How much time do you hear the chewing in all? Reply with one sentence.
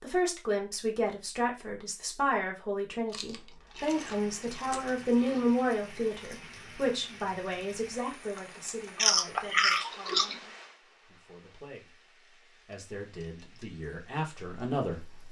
You can hear the chewing for 4 seconds altogether.